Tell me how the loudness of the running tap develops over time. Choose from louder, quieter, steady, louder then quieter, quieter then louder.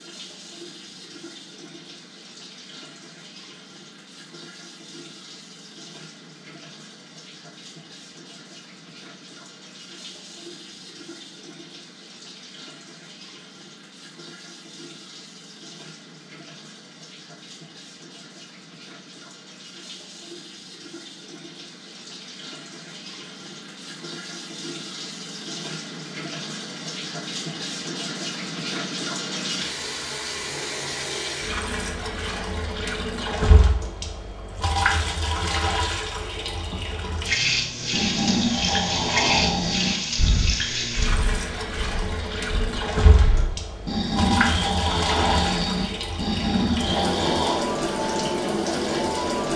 louder.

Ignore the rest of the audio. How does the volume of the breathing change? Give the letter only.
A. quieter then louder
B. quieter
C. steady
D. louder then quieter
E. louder
A.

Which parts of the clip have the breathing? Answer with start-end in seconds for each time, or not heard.
37.9-47.6.